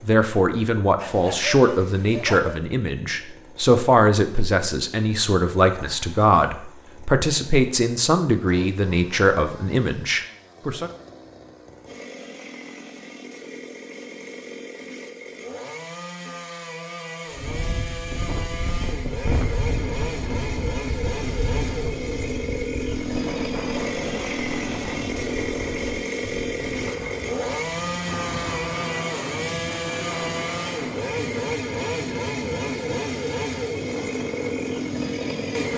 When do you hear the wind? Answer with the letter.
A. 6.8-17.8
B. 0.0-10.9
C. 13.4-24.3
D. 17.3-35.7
D.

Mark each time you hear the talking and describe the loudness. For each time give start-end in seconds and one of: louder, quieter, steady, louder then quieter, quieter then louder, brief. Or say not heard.
0.0-10.9 steady.